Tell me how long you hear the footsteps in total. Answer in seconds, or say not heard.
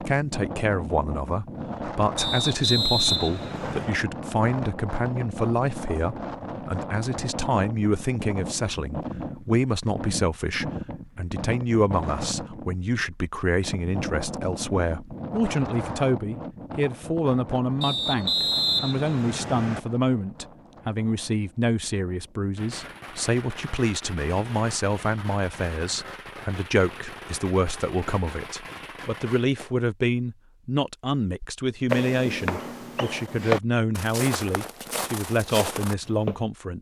5 s.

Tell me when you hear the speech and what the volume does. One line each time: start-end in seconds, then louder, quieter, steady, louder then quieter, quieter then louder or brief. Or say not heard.
0.0-36.7 steady.